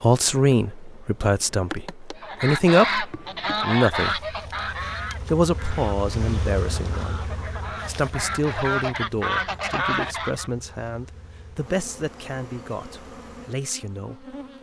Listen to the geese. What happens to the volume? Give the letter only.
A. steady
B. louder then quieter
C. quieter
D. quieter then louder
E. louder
D.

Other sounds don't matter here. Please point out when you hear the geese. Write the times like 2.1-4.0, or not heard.
2.1-10.5.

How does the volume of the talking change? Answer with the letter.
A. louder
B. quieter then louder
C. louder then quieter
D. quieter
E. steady
D.